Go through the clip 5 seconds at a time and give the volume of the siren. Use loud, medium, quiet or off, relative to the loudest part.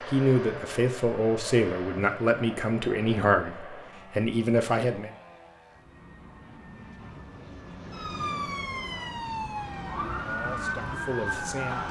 off, loud, loud.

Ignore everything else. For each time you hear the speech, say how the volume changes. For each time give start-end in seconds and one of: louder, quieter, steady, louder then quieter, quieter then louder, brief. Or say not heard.
0.1-5.1 steady
10.2-11.8 brief.